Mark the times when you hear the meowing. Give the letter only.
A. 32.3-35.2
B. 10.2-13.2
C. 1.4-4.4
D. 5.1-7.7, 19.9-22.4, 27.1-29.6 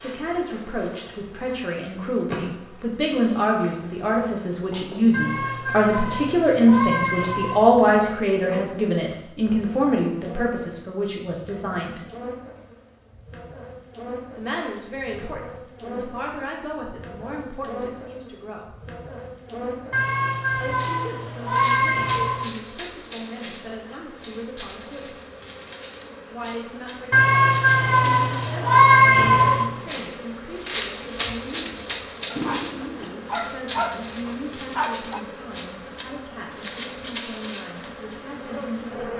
D.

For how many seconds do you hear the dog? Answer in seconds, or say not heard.
3 s.